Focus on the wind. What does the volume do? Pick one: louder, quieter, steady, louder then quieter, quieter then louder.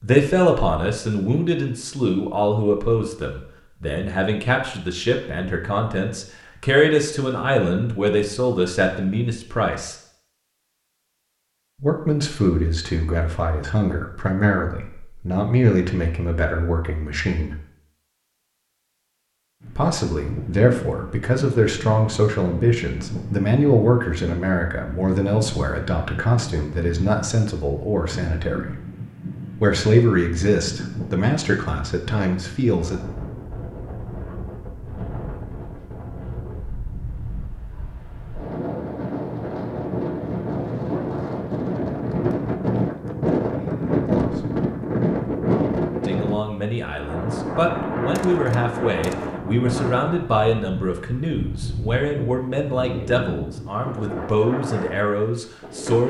louder then quieter.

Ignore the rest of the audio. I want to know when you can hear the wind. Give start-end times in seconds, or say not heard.
19.6-56.0.